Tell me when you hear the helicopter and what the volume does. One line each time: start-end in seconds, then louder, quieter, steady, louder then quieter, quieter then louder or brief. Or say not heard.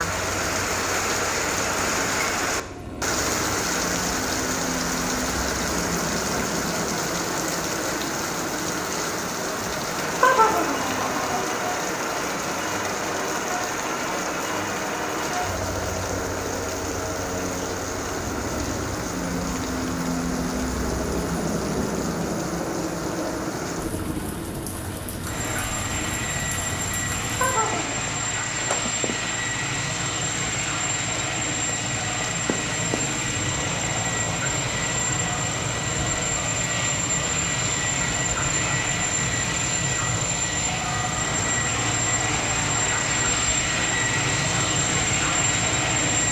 0.0-46.2 louder.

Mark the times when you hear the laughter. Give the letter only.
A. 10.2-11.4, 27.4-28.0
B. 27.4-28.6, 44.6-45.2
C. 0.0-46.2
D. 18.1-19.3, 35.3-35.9
A.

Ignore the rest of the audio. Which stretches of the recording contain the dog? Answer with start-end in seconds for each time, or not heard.
not heard.